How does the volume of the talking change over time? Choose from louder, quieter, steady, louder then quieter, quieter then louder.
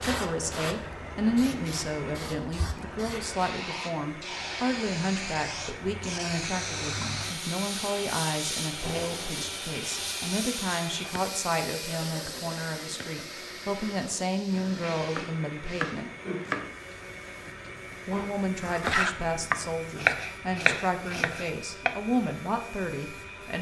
steady.